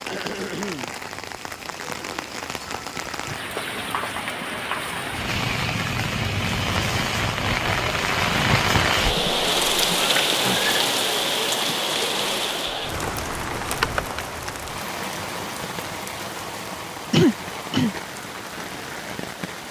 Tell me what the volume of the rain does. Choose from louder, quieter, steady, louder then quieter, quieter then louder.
louder then quieter.